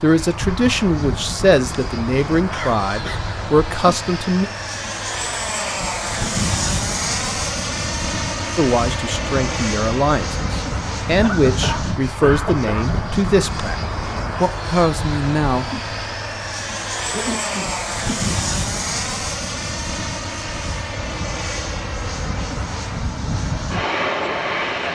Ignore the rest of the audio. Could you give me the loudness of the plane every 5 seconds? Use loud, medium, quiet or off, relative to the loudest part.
medium, loud, loud, loud, loud.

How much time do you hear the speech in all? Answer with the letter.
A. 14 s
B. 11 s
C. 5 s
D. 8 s
B.